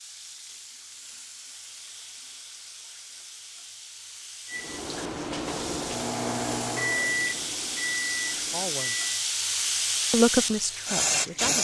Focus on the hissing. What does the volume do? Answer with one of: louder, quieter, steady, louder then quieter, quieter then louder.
louder.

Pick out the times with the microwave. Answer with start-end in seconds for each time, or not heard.
4.5-9.2.